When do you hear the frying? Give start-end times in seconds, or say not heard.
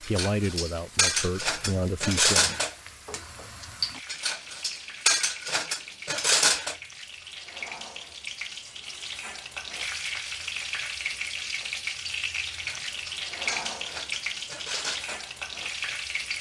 0.0-16.3.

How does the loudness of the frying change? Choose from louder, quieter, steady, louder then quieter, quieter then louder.
louder.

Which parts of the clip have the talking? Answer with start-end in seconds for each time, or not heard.
0.0-2.4.